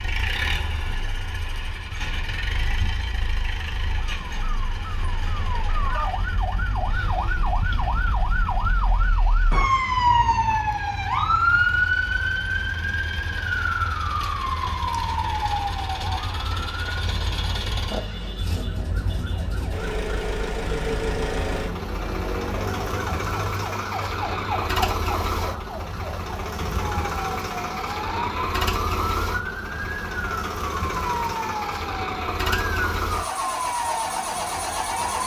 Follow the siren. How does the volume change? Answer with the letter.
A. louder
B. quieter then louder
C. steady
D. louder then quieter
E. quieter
D.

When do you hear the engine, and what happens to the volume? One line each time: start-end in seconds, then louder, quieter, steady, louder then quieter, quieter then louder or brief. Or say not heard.
0.0-35.2 quieter then louder.